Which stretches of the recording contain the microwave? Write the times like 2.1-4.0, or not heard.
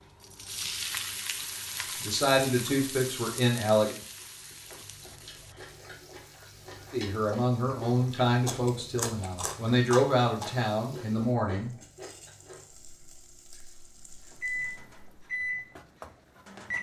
14.3-16.7.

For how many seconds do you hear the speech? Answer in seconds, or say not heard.
7 s.